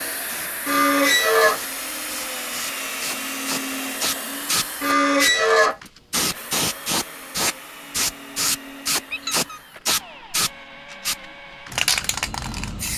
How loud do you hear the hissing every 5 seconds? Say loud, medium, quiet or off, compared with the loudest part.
medium, loud, loud.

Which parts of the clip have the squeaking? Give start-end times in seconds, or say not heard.
0.7-1.6, 4.8-5.8, 9.1-9.6.